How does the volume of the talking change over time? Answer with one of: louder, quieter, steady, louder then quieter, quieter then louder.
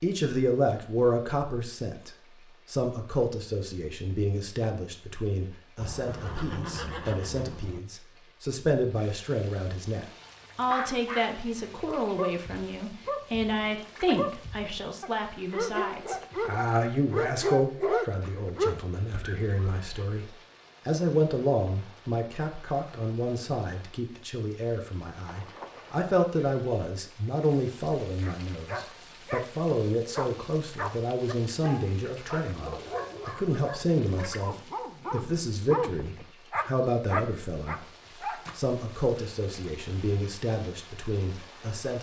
steady.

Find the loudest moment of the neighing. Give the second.
7 s.